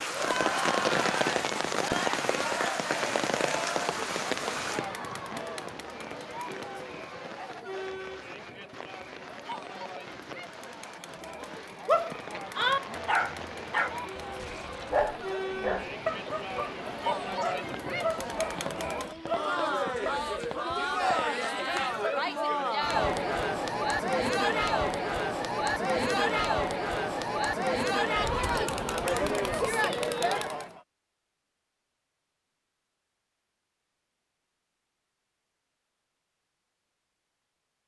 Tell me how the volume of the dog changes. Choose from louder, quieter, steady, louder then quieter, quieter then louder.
quieter.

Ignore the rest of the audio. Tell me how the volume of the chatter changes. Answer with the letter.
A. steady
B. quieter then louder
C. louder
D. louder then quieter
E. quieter
B.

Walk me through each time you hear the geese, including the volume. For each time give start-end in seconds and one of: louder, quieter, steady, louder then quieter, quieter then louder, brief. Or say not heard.
not heard.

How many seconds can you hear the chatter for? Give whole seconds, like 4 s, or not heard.
31 s.